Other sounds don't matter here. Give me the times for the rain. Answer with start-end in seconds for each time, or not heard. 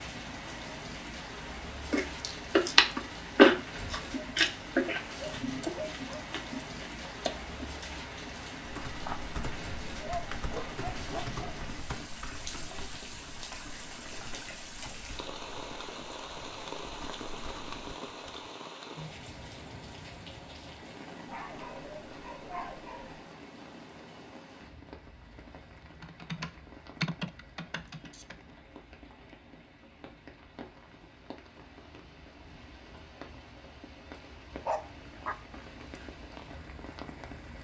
0.0-37.5.